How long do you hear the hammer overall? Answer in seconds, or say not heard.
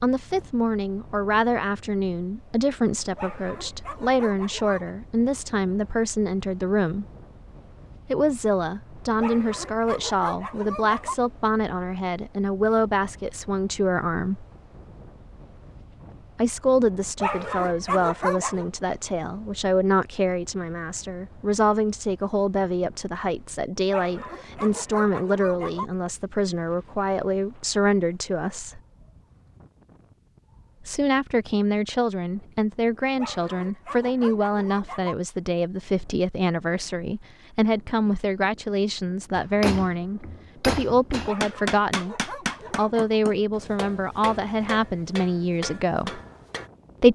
7 s.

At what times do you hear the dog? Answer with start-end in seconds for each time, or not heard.
3.1-5.0, 9.2-11.2, 17.2-18.6, 23.9-25.9, 33.1-35.1, 41.2-43.0.